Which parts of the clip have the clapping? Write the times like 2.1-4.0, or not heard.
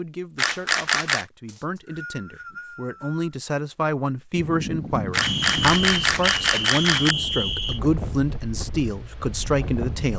not heard.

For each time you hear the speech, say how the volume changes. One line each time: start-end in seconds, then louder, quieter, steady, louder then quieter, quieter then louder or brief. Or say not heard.
0.0-10.1 louder.